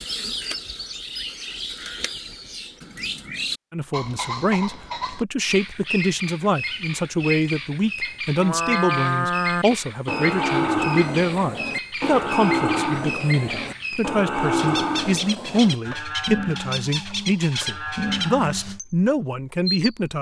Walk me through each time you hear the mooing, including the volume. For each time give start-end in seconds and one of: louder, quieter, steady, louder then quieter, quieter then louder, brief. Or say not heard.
8.3-18.8 quieter.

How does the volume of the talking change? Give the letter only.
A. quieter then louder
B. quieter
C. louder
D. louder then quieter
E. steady
E.